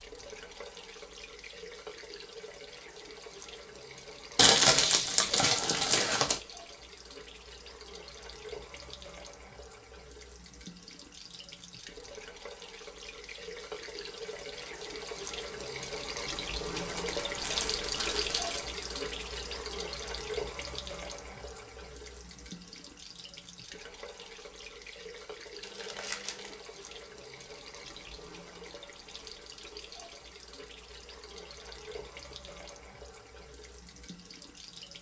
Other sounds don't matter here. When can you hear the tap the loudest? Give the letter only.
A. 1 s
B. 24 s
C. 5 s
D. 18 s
D.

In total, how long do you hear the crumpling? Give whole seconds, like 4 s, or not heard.
5 s.